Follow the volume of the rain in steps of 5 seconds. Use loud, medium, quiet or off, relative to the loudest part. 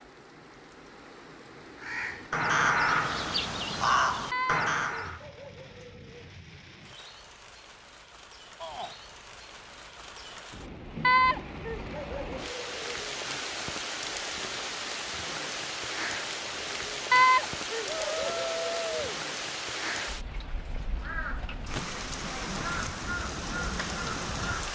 quiet, quiet, loud, loud, loud.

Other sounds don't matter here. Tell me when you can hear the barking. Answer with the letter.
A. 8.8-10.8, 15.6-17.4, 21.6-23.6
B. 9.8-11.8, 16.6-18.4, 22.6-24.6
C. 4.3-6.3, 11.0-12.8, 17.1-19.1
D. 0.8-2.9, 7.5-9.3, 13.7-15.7
C.